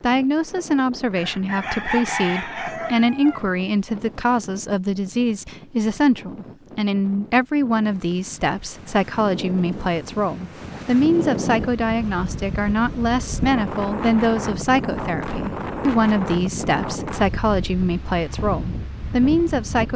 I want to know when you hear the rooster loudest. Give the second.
2 s.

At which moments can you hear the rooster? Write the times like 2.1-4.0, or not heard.
1.1-3.5.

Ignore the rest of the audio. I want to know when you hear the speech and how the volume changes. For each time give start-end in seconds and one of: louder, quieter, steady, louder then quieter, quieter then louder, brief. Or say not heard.
0.0-19.9 steady.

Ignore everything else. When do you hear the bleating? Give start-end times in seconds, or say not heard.
not heard.